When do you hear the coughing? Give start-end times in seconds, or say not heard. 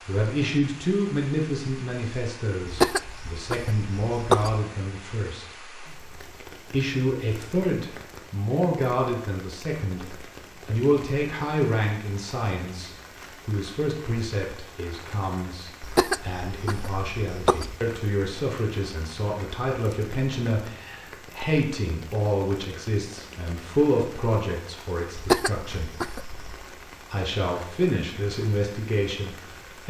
2.6-4.6, 15.8-17.8, 25.1-26.6.